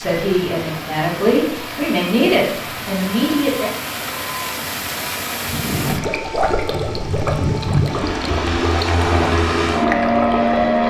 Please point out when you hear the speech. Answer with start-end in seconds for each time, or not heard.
0.0-3.7.